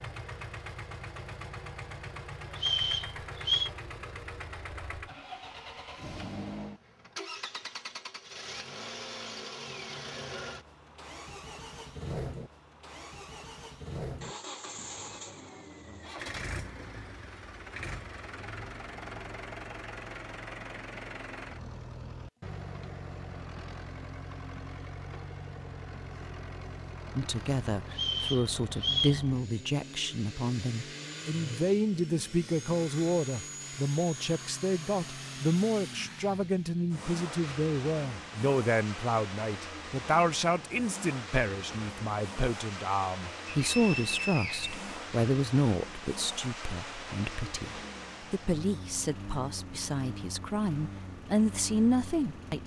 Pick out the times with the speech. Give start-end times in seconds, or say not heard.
27.1-52.6.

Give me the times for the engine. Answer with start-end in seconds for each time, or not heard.
0.0-52.6.